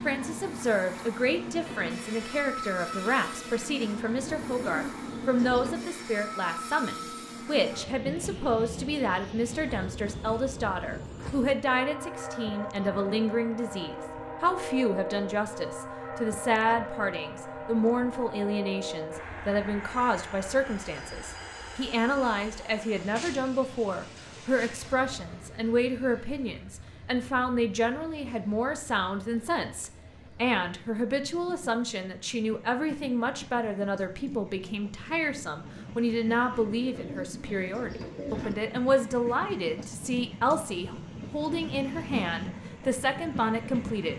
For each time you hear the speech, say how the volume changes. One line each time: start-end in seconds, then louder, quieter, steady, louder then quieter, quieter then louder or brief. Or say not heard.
0.1-44.1 steady.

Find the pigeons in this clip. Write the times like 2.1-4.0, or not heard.
4.2-5.9, 36.5-38.5.